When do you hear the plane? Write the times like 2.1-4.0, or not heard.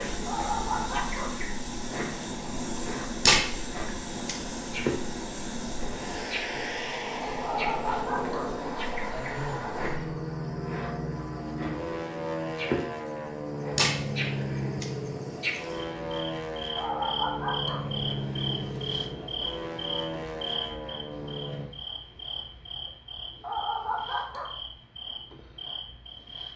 0.0-21.7.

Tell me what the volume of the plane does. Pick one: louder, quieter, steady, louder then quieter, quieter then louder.
steady.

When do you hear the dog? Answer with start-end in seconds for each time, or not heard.
0.2-1.3, 7.4-8.4, 16.8-17.8, 23.4-24.5.